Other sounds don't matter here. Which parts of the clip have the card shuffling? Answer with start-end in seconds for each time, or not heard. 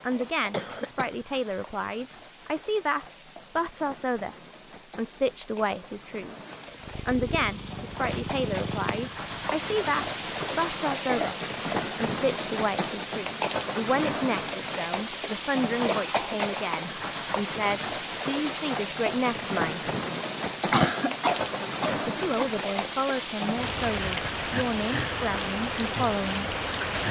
not heard.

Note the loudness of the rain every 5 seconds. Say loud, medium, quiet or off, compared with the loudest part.
quiet, medium, loud, loud, loud, loud.